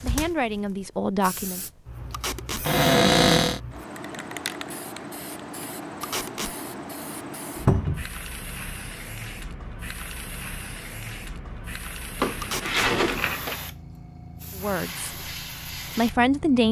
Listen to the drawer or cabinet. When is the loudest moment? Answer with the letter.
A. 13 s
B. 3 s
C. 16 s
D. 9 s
B.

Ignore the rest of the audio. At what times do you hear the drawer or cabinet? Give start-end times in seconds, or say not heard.
2.6-3.6, 7.7-8.1, 12.2-13.6.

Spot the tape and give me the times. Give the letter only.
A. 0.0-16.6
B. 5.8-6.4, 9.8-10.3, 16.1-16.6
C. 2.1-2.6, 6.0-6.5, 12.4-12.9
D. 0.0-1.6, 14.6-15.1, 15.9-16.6
C.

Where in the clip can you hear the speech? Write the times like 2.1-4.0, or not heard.
0.0-1.6, 14.6-15.1, 15.9-16.6.